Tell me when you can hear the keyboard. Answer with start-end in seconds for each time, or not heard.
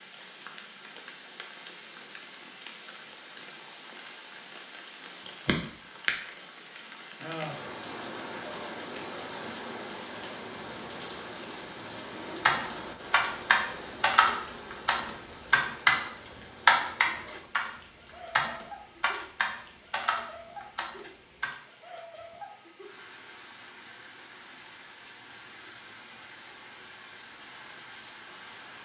12.4-16.0, 16.6-17.7, 18.4-21.5.